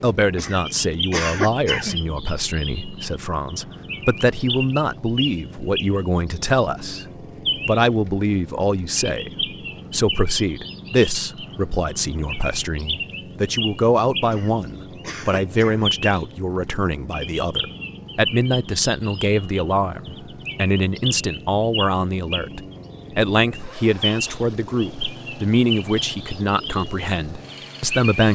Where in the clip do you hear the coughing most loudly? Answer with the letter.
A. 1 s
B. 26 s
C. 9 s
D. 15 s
A.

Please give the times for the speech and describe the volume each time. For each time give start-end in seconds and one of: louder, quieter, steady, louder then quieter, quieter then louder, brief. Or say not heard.
0.0-28.3 steady.